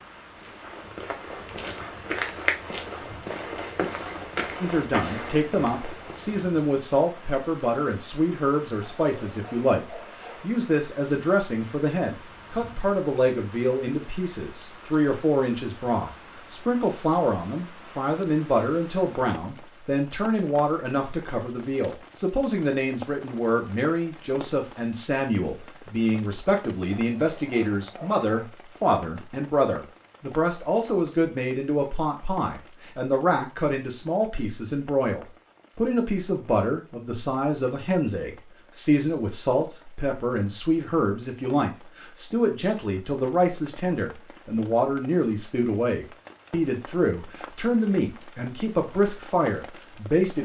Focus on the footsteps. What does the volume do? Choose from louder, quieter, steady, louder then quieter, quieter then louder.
louder then quieter.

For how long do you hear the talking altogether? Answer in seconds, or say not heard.
46 s.